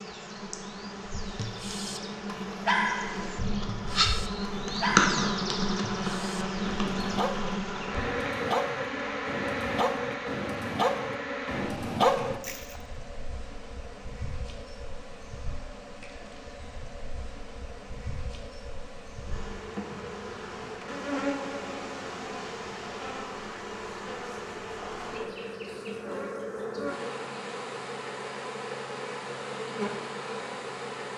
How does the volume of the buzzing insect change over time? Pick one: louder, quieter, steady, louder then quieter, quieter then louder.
quieter then louder.